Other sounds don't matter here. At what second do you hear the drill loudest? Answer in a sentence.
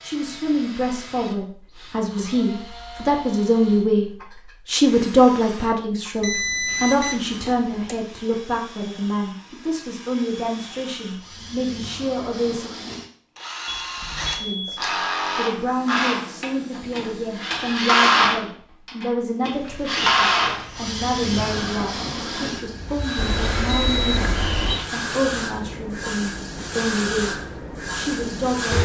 The volume of the drill peaks at 18 seconds.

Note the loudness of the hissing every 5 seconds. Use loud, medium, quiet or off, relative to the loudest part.
off, off, off, quiet, medium, loud.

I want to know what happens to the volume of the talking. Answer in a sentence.
The loudness of the talking goes down.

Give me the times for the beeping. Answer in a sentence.
You can hear the beeping from 6.2 to 8.0 s, from 13.7 to 14.8 s and from 23.1 to 24.8 s.